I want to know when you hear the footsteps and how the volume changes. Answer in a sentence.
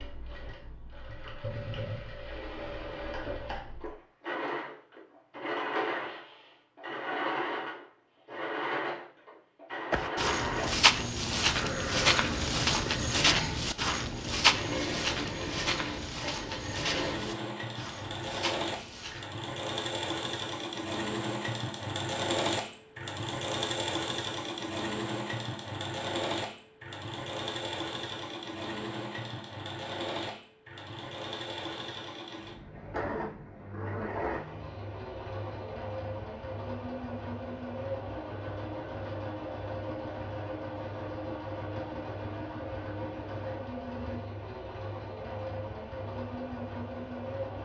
You can hear the footsteps from 9.9 to 19.2 s, getting quieter.